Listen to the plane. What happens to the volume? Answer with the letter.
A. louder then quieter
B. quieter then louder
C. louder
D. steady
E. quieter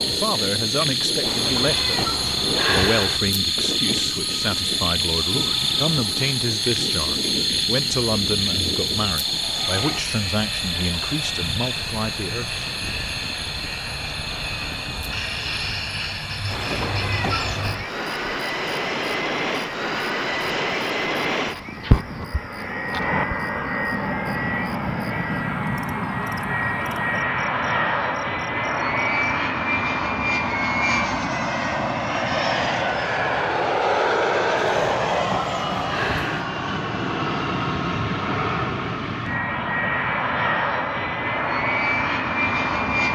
C.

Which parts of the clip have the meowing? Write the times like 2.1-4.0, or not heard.
1.2-3.2, 16.5-17.9, 34.8-36.5.